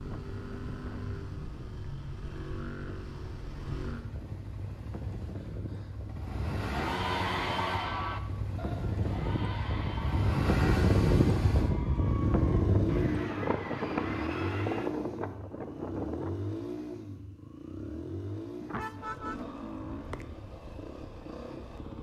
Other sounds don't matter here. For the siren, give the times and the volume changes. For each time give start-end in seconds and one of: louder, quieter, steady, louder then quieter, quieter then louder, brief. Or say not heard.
not heard.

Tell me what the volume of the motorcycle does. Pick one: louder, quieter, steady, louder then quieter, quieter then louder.
louder then quieter.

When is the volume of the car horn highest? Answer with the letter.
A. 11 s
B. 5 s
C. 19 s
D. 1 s
C.